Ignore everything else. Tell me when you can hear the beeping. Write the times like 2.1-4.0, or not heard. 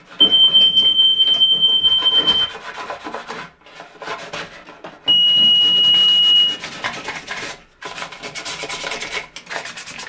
0.2-2.5, 5.0-6.6.